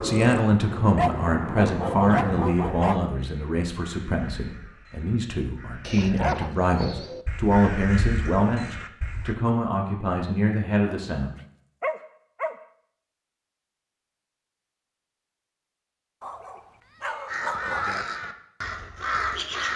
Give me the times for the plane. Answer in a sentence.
The plane can be heard from 0.0 to 2.5 s.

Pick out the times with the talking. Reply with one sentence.
You can hear the talking from 0.0 to 11.3 s.